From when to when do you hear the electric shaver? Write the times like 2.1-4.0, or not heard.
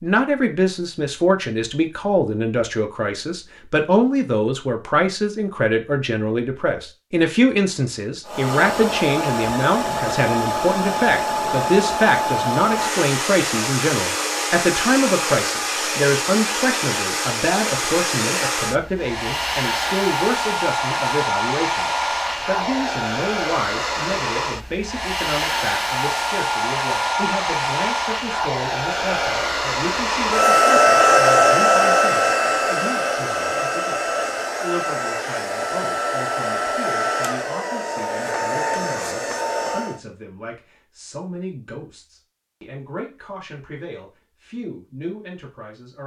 not heard.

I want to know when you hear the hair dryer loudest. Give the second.
31 s.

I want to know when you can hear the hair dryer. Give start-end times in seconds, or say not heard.
8.2-40.0.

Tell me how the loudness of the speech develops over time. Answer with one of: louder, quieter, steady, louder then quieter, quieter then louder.
quieter.